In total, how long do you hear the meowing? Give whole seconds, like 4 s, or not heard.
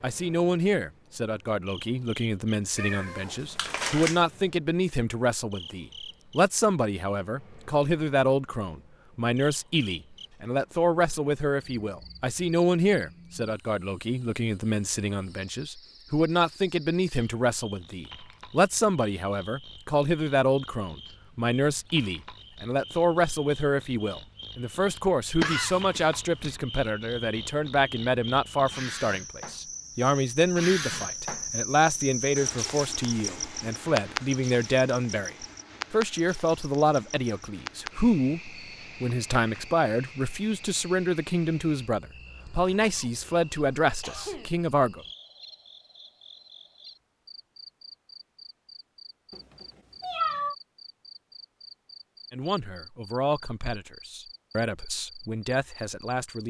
3 s.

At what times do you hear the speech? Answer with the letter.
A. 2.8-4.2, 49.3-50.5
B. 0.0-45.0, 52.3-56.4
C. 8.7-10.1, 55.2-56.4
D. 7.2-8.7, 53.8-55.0
B.